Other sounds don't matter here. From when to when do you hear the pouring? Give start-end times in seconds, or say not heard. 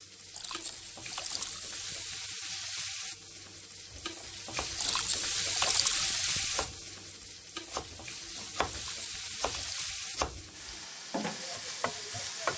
0.3-2.2, 4.8-6.7, 8.7-10.1.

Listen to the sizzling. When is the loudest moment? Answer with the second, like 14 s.
6 s.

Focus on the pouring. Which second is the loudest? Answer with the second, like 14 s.
6 s.